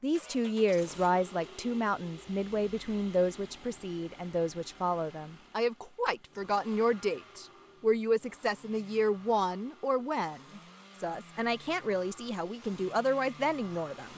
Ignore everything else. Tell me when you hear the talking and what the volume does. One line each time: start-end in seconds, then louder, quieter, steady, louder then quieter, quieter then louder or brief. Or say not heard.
0.0-14.1 steady.